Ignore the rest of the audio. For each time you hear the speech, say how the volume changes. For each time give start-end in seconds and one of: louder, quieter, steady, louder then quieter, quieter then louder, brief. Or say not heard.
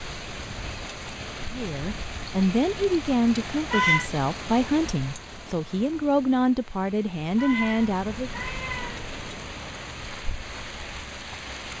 1.5-8.4 steady.